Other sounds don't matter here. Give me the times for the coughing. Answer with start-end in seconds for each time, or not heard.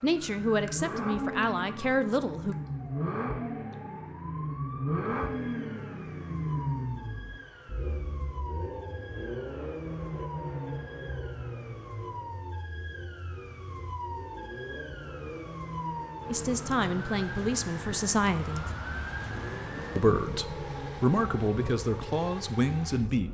not heard.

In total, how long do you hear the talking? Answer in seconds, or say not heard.
8 s.